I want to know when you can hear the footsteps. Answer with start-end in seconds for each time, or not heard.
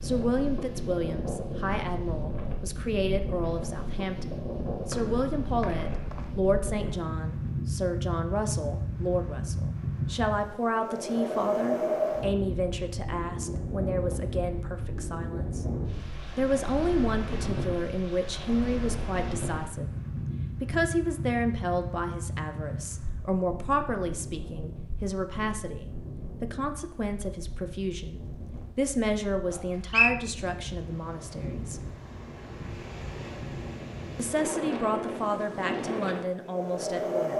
not heard.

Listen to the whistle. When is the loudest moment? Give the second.
30 s.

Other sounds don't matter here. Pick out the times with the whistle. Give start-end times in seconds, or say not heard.
4.9-6.3, 29.5-30.1.